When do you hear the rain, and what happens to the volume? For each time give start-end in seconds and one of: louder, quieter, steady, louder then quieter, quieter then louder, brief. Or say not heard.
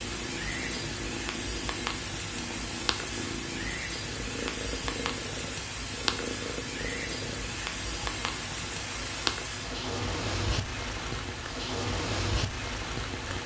0.0-13.4 steady.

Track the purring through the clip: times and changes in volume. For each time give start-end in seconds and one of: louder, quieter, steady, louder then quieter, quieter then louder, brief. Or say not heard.
0.0-13.4 steady.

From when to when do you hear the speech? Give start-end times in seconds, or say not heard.
not heard.